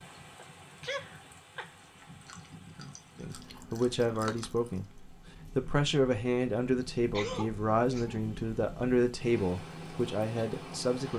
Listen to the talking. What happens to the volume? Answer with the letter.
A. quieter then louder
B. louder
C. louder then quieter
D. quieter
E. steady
E.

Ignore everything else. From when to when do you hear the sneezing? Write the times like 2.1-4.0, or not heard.
0.3-1.8, 7.1-8.2.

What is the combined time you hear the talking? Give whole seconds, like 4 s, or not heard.
8 s.